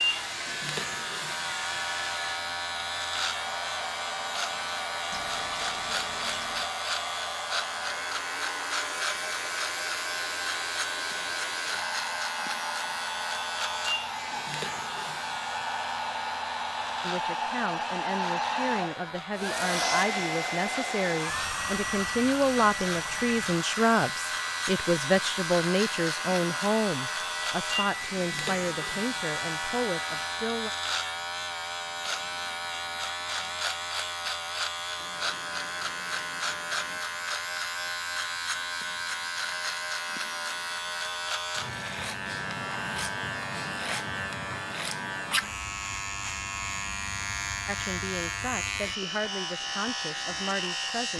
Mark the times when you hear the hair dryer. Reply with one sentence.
You can hear the hair dryer from 0.0 to 30.3 s.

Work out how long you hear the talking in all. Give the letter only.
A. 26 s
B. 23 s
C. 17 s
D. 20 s
C.